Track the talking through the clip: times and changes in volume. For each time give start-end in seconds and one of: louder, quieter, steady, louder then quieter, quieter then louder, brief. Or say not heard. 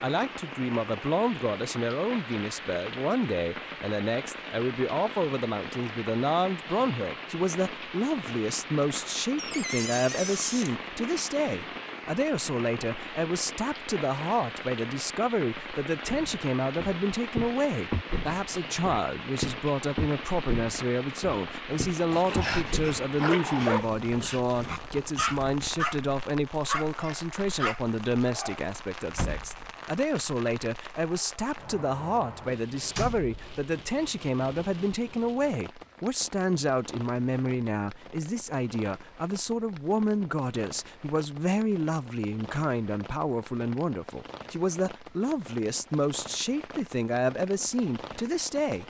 0.0-48.8 steady.